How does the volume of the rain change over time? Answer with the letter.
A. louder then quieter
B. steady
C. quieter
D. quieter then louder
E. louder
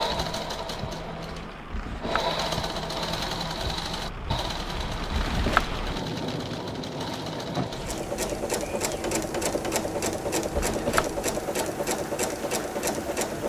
A.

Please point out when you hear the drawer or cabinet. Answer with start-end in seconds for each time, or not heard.
1.6-2.4, 5.0-5.8, 10.5-11.2.